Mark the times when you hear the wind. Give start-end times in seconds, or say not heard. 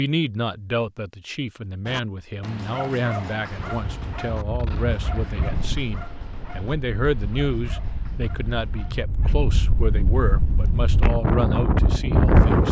3.6-12.6.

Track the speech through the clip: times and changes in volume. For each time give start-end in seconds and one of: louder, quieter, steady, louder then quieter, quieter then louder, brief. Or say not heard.
0.0-12.6 steady.